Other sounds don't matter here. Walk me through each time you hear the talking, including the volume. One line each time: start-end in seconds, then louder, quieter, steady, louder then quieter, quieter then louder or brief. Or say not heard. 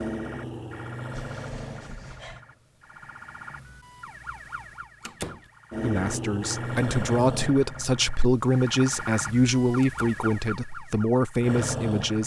5.8-12.2 steady.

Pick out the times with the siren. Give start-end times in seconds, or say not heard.
0.0-12.2.